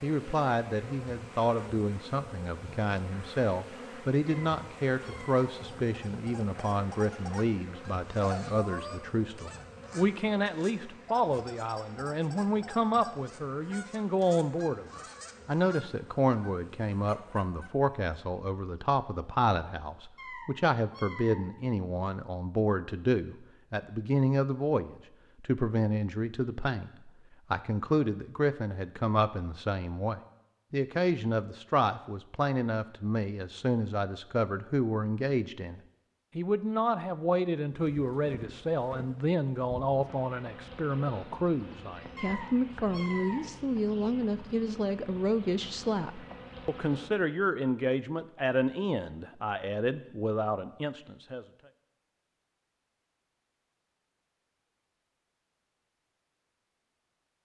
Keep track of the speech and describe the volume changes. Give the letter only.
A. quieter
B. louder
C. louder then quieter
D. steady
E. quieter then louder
D.